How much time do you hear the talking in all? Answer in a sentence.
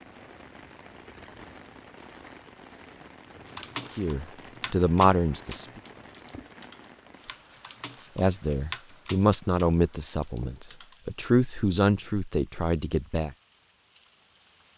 You can hear the talking for 7 seconds altogether.